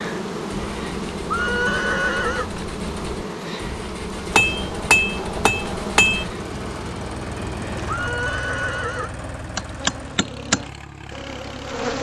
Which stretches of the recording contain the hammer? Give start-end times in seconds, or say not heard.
4.3-6.2.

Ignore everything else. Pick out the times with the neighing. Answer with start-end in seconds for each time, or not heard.
1.3-2.5, 7.8-9.1.